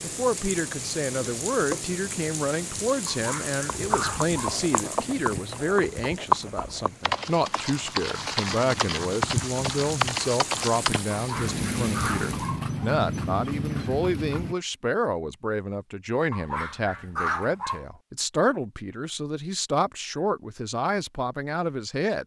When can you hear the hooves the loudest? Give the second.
6 s.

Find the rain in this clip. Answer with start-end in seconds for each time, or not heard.
0.0-12.6.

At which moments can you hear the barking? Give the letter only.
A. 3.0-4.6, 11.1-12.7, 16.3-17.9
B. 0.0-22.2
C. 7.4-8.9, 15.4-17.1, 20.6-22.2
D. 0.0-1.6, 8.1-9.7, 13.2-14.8
A.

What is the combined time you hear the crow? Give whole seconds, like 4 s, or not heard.
not heard.